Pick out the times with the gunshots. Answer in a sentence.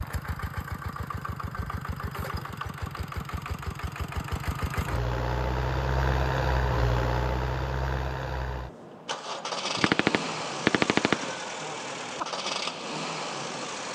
You can hear the gunshots from 9.8 to 11.3 s.